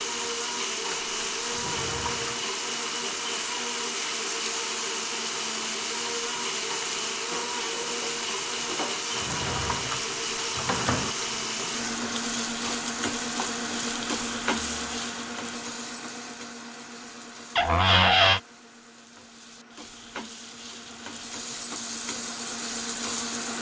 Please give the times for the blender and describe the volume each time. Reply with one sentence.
You can hear the blender from 0.0 to 23.5 s, getting quieter.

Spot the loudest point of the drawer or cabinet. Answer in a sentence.
The loudest moment of the drawer or cabinet is at 18 seconds.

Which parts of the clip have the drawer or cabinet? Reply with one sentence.
You can hear the drawer or cabinet from 1.5 to 2.4 s, from 9.2 to 11.2 s and from 17.6 to 18.4 s.